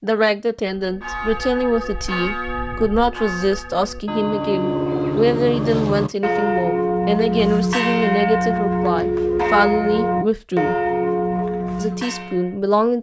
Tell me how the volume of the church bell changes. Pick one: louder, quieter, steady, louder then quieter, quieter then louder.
louder.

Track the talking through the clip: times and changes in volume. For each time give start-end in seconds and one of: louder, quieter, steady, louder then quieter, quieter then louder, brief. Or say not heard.
0.0-10.8 steady
11.8-12.9 brief.